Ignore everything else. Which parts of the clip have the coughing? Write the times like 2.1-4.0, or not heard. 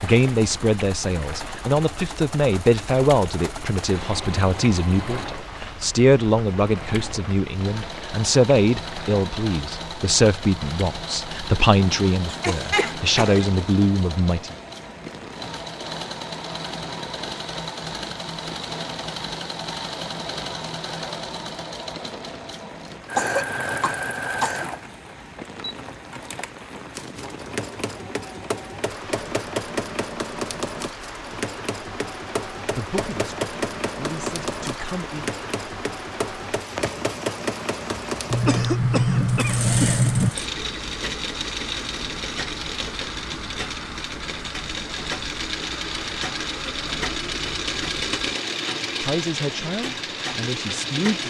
12.2-13.4, 22.7-25.1, 38.3-40.3.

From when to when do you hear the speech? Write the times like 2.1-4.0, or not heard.
0.0-14.6, 32.8-35.3, 49.0-51.2.